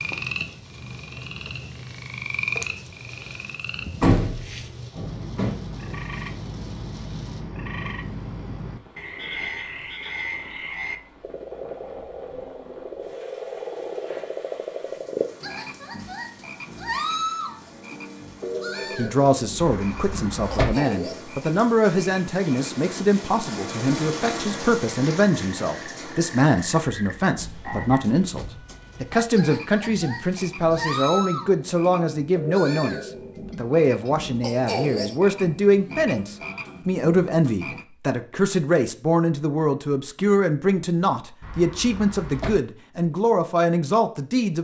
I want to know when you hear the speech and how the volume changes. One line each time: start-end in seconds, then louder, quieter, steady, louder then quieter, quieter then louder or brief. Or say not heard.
18.9-44.5 steady.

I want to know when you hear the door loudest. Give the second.
4 s.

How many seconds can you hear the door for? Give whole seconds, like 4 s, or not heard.
4 s.